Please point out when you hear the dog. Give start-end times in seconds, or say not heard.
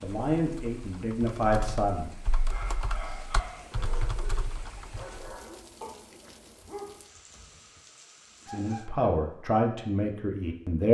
2.3-7.8, 8.4-9.1.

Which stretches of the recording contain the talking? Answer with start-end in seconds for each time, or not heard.
0.0-2.1, 8.4-10.8.